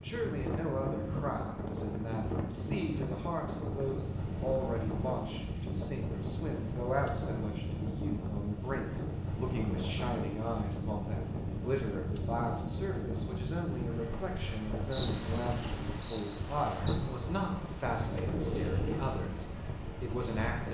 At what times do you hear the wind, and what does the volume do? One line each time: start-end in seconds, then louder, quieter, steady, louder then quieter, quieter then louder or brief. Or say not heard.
0.0-20.7 steady.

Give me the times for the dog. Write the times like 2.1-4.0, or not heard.
18.0-19.2.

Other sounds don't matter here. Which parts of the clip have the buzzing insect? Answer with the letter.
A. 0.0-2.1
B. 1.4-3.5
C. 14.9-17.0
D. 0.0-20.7
C.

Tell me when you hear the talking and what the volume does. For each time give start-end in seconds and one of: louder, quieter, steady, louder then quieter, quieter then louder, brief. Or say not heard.
0.0-20.7 steady.